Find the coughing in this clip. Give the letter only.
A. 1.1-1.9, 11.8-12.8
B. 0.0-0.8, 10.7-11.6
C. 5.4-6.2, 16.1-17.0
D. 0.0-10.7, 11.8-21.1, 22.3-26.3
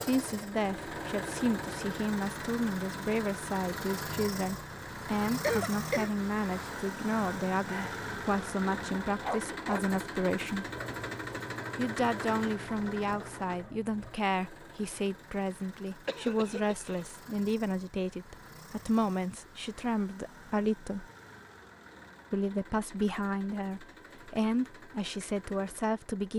C.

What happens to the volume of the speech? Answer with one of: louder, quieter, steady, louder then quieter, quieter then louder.
steady.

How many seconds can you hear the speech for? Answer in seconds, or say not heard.
24 s.